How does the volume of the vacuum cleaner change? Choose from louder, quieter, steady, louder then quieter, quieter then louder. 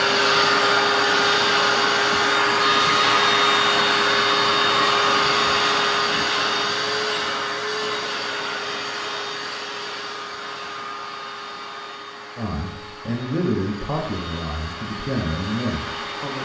quieter.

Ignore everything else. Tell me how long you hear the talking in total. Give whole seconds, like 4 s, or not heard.
4 s.